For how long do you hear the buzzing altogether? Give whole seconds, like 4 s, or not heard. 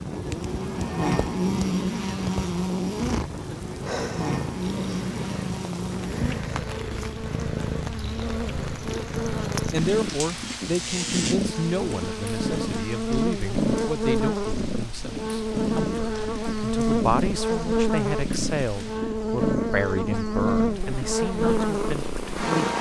23 s.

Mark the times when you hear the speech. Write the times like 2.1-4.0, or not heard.
9.6-22.7.